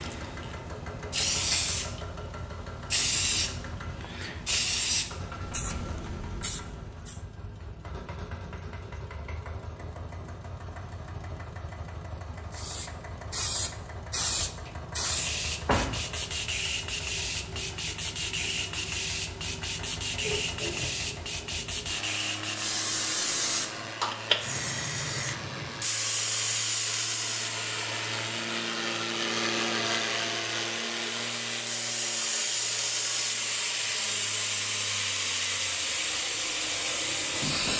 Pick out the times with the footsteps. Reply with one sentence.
You can't hear the footsteps here.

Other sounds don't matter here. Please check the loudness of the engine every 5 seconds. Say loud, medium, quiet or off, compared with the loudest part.
medium, medium, medium, medium, medium, loud, loud, medium.